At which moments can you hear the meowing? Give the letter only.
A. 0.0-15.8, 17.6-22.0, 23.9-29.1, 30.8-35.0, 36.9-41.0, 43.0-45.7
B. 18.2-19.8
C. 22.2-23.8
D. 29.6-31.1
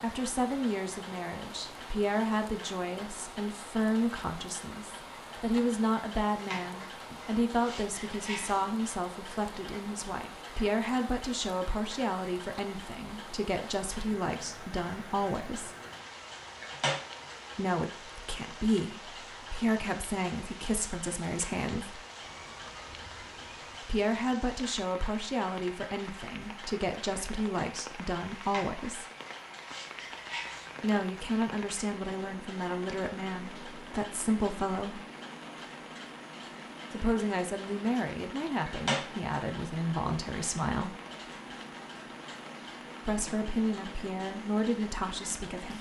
C.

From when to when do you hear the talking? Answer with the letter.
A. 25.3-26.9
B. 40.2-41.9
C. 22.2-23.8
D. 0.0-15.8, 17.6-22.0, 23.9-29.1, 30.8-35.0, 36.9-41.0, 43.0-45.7
D.